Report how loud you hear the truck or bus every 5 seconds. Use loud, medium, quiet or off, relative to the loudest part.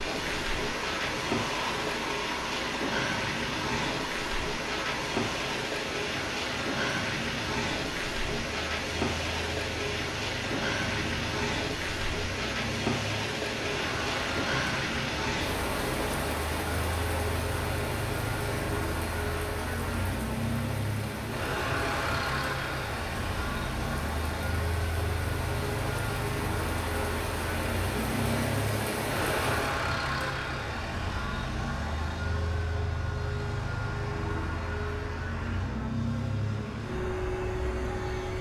medium, medium, medium, loud, loud, loud, loud, loud.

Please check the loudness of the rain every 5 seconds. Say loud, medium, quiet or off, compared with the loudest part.
loud, loud, loud, loud, medium, loud, off, off.